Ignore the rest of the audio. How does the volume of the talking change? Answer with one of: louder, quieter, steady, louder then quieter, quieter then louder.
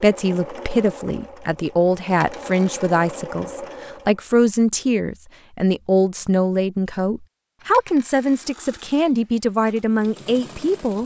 steady.